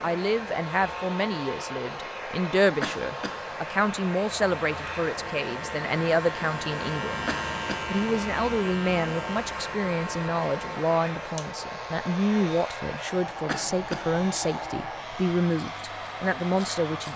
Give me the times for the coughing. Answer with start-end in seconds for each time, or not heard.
2.8-3.4, 7.2-7.8, 13.4-14.1.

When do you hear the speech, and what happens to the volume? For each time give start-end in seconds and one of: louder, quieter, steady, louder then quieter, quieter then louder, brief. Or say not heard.
0.0-17.1 steady.